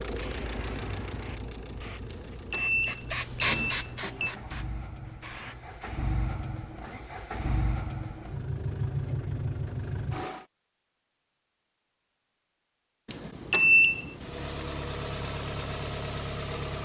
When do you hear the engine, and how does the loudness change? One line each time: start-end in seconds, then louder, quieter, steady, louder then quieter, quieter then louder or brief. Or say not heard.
0.0-10.4 quieter then louder
14.2-16.7 brief.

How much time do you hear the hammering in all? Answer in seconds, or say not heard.
not heard.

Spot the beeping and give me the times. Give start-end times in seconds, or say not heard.
2.1-4.3, 13.1-14.3.